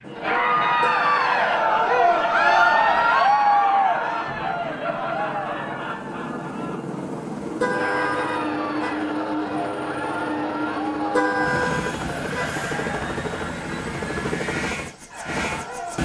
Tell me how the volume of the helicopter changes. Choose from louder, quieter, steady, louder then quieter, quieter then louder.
louder.